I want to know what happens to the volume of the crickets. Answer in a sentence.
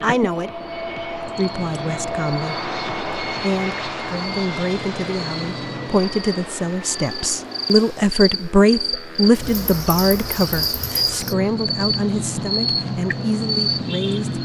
The loudness of the crickets goes up.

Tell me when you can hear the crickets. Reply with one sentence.
The crickets can be heard from 0.0 to 14.4 s.